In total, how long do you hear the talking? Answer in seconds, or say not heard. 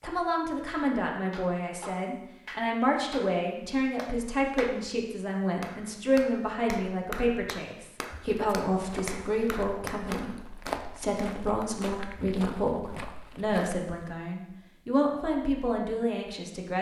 17 s.